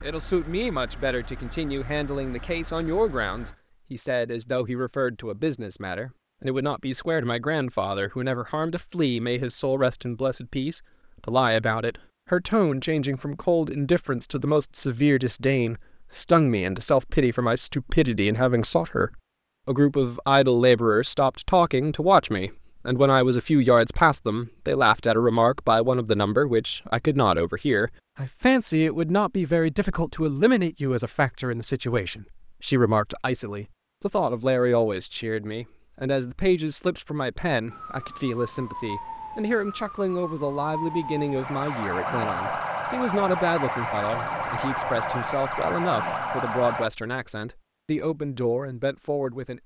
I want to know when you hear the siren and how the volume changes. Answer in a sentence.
You can hear the siren from 37.7 to 46.9 s, getting louder.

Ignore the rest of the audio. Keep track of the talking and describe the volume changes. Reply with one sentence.
The loudness of the talking goes up, then down.